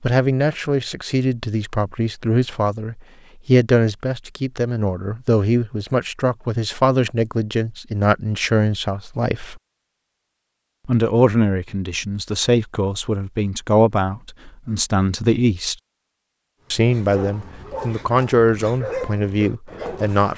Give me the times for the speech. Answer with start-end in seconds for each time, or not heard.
0.0-9.6, 10.8-15.8, 16.7-20.3.